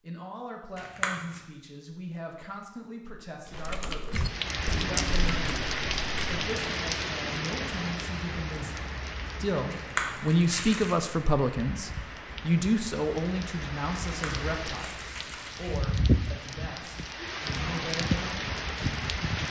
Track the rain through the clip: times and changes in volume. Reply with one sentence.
You can hear the rain from 4.1 to 19.4 s, getting quieter then louder.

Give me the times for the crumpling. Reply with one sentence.
The crumpling can be heard from 0.8 to 1.4 s, from 9.7 to 10.9 s and from 14.1 to 15.8 s.